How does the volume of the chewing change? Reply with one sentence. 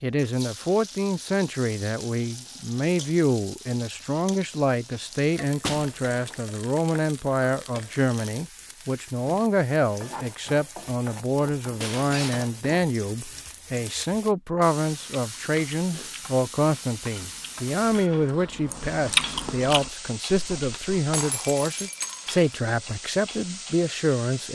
The loudness of the chewing goes up, then down.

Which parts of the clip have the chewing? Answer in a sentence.
The chewing can be heard from 14.9 to 20.9 s.